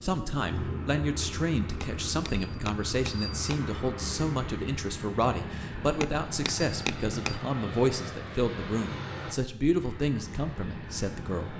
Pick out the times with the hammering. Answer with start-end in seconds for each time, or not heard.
1.6-3.6, 5.9-7.4.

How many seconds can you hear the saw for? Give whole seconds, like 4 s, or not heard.
not heard.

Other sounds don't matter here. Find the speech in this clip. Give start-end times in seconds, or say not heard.
0.0-11.5.